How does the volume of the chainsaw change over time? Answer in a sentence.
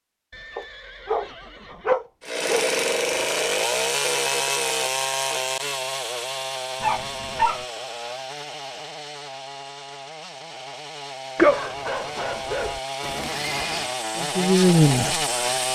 The loudness of the chainsaw goes down, then up.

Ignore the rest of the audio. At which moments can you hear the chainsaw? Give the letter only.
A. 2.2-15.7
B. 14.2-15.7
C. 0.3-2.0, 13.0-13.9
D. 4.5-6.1
A.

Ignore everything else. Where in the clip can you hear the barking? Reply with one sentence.
The barking can be heard from 0.6 to 2.7 s, from 6.8 to 7.7 s and from 11.3 to 12.8 s.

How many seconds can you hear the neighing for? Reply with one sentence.
The neighing can be heard for 3 seconds in total.